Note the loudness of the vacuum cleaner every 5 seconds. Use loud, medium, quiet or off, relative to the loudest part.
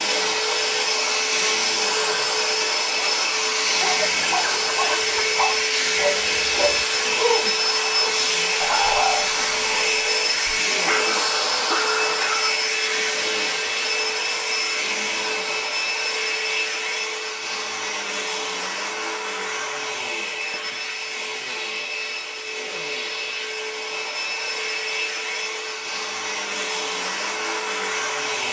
loud, loud, loud, medium, medium, medium.